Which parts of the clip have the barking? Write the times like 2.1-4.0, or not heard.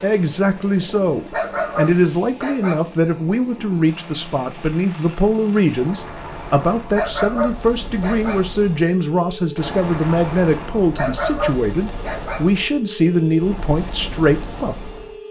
1.3-2.9, 6.9-8.4, 10.9-12.4.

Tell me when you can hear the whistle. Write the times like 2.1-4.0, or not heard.
not heard.